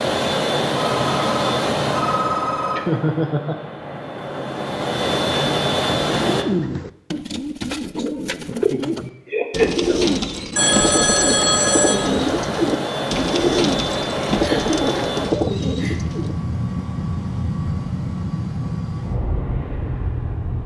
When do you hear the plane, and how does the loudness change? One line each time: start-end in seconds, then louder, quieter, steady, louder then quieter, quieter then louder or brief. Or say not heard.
0.0-6.5 quieter then louder
10.6-20.6 steady.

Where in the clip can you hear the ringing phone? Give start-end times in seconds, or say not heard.
0.8-2.8, 10.6-12.0.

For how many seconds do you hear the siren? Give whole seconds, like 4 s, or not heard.
not heard.